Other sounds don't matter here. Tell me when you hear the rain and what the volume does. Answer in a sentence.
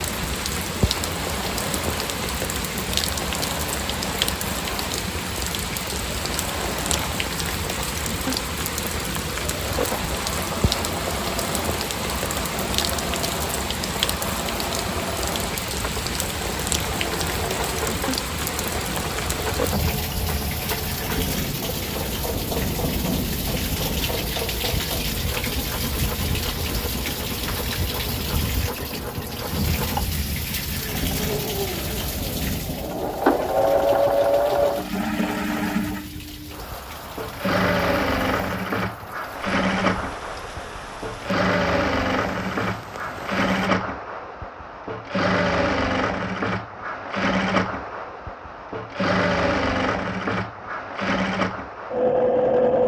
You can hear the rain from 0.0 to 43.7 s, getting quieter.